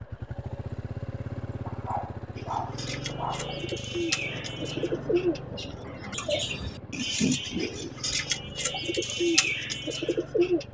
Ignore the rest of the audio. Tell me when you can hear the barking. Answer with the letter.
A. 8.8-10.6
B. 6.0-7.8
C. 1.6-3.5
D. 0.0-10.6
C.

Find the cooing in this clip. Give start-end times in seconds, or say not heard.
2.4-10.6.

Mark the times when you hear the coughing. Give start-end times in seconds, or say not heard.
not heard.